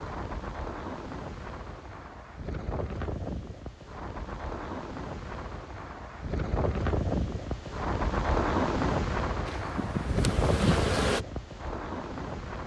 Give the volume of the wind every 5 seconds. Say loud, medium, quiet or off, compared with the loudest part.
medium, loud, loud.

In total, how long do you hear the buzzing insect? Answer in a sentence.
You can hear the buzzing insect for 2 seconds altogether.